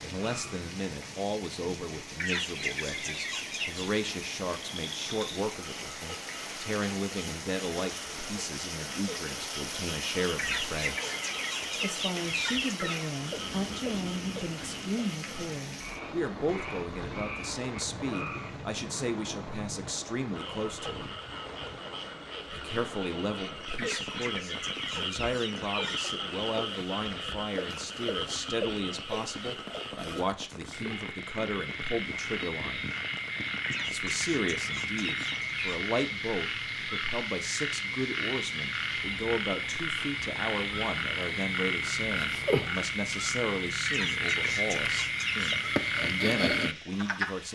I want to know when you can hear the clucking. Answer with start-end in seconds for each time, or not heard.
2.1-3.9, 10.3-13.2, 23.8-26.1, 33.6-35.8, 43.9-45.6.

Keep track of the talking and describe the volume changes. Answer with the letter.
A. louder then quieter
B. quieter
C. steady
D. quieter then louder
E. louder
C.